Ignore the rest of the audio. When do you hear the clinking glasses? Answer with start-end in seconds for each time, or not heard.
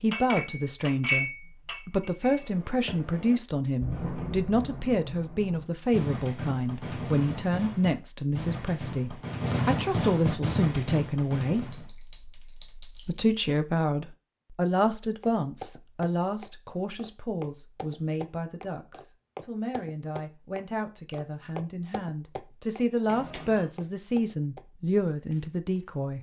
0.1-2.5, 11.7-13.6, 23.1-23.6.